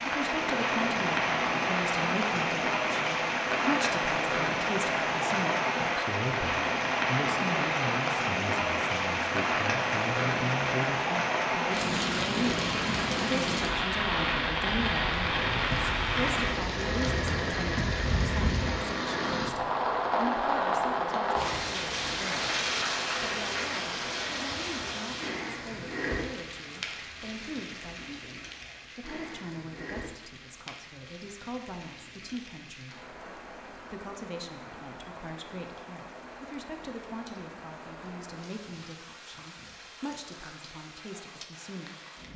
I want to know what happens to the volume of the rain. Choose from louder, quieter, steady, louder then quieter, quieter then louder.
quieter.